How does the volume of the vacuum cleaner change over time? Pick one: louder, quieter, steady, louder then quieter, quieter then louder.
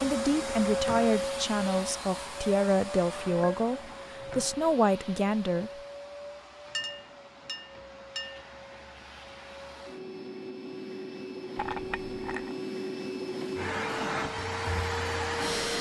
quieter then louder.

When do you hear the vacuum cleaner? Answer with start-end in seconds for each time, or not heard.
0.0-15.7.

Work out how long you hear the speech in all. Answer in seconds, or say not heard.
6 s.